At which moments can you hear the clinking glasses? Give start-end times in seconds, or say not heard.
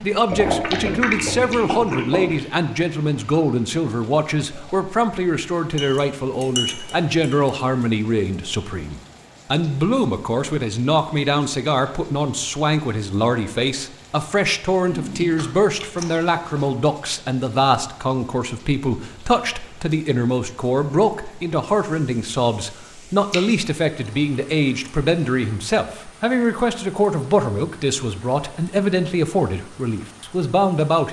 5.8-7.7.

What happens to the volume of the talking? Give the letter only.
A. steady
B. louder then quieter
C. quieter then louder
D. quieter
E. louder
A.